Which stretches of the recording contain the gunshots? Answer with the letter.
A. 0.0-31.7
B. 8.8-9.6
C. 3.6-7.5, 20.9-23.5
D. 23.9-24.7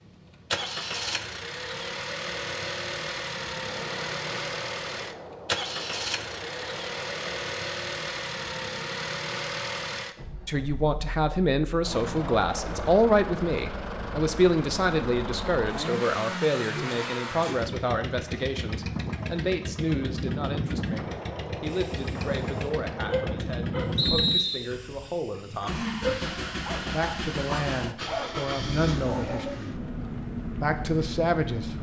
C.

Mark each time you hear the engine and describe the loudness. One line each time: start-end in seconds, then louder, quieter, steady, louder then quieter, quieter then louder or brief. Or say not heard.
0.0-31.7 steady.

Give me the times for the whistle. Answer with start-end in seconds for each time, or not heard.
23.9-24.7.